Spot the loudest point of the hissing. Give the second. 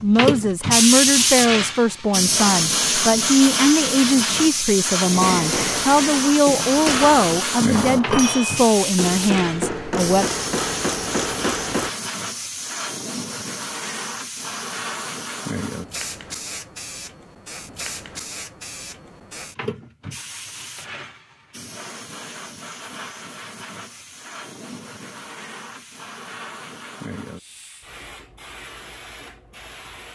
1 s.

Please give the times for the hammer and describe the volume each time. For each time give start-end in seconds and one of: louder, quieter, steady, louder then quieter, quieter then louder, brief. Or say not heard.
5.1-11.9 steady.